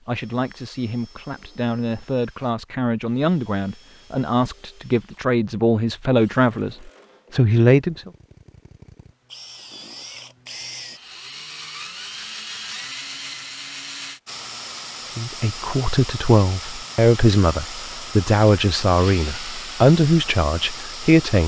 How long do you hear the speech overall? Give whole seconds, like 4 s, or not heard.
14 s.